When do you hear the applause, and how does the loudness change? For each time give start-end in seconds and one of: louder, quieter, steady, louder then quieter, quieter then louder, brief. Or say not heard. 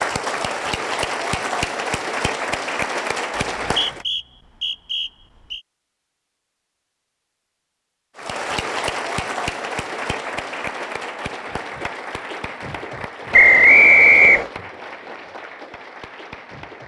0.0-4.0 steady
8.2-16.8 quieter.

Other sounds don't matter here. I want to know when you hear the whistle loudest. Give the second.
14 s.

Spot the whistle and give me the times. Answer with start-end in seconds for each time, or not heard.
3.6-5.6, 13.3-14.5.